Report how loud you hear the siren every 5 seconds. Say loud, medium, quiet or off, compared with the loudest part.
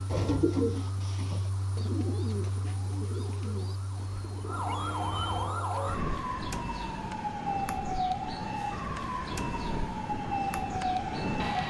medium, loud, loud.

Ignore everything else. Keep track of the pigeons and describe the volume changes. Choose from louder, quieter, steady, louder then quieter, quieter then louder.
quieter.